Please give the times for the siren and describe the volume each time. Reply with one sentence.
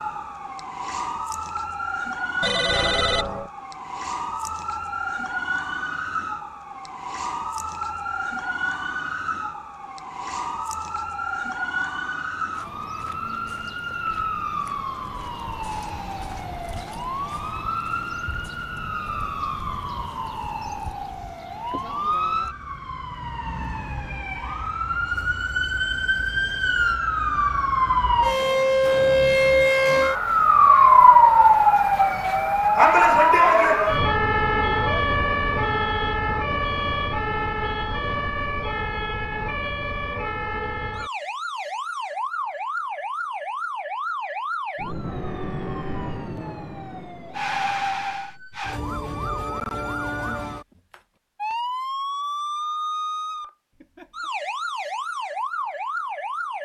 You can hear the siren from 0.0 to 56.5 s, getting louder then quieter.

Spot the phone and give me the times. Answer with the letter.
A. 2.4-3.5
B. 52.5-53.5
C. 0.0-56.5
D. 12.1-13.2
A.